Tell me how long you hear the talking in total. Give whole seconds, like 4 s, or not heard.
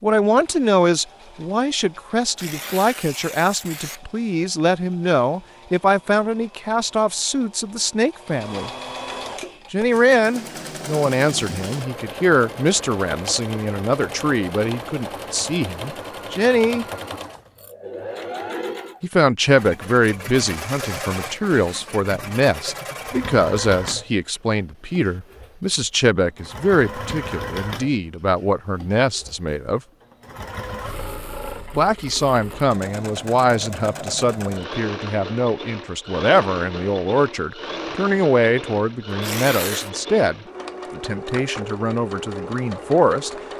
38 s.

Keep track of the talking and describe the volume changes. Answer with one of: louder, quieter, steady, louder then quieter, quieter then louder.
steady.